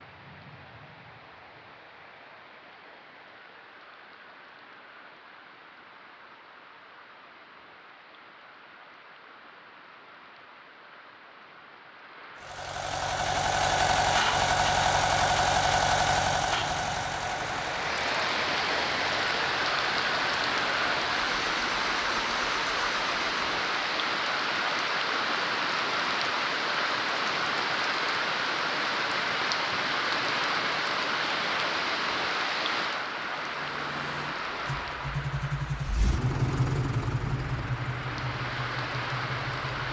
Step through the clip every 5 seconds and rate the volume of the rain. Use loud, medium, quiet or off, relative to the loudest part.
quiet, quiet, quiet, loud, loud, loud, loud, medium.